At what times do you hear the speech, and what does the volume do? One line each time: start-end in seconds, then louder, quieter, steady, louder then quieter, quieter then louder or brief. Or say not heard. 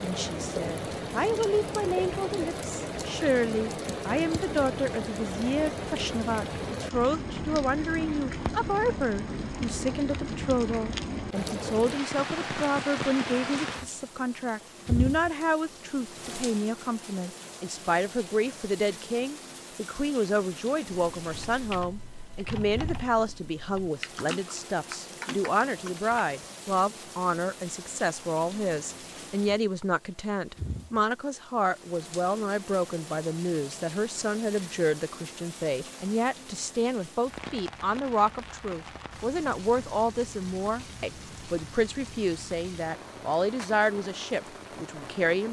0.0-45.4 steady.